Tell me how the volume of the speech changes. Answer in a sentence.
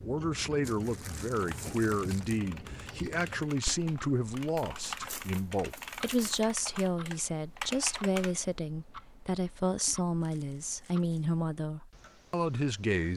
The loudness of the speech stays about the same.